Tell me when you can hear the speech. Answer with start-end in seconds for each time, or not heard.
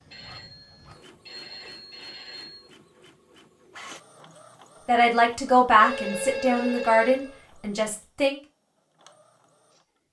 4.8-8.4.